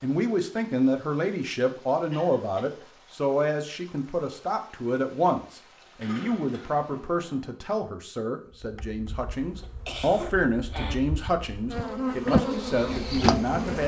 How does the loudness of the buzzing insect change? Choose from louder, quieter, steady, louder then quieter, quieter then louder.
louder.